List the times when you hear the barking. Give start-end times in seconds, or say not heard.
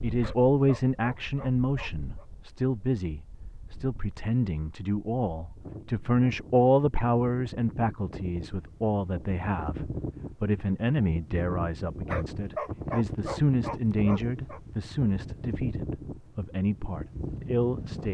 0.2-2.2, 12.1-14.6.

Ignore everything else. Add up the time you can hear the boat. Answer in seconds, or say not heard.
not heard.